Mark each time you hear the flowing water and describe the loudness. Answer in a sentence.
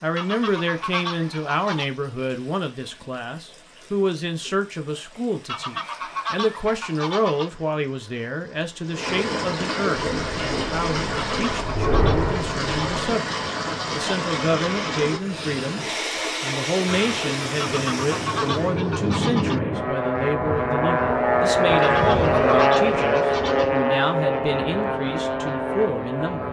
The flowing water can be heard from 0.0 to 18.7 s, getting louder.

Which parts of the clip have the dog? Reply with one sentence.
You can't hear the dog here.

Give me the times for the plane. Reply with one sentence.
You can hear the plane from 9.9 to 13.1 s and from 16.9 to 26.4 s.